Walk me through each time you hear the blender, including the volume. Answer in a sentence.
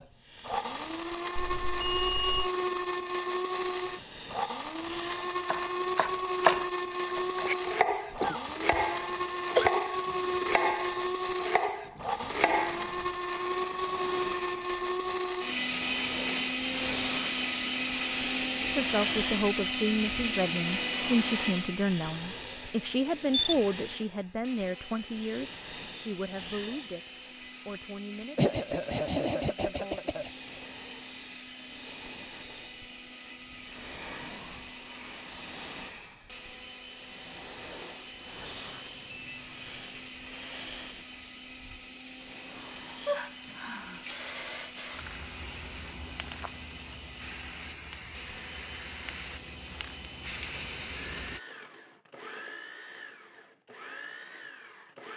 The blender can be heard from 0.0 to 55.1 s, getting quieter.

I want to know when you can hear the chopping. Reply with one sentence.
The chopping can be heard from 5.5 to 12.9 s.